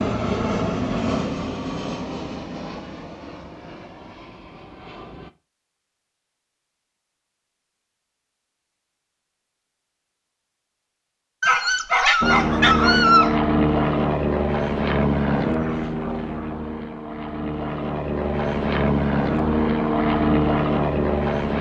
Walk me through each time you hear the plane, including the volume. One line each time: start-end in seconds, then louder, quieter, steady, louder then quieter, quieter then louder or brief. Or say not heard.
0.0-5.3 quieter
12.2-21.5 quieter then louder.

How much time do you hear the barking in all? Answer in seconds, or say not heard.
2 s.